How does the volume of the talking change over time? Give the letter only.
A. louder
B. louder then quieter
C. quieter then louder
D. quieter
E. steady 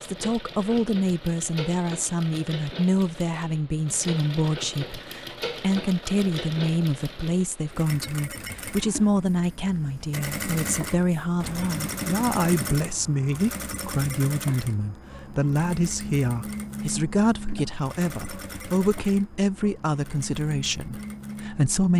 E.